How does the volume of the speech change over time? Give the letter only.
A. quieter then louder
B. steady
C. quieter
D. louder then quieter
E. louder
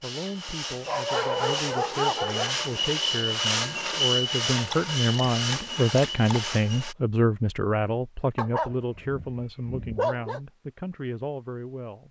D.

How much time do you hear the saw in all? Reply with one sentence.
The saw can be heard for 7 seconds in total.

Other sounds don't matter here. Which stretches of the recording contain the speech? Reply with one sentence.
The speech can be heard from 0.0 to 12.0 s.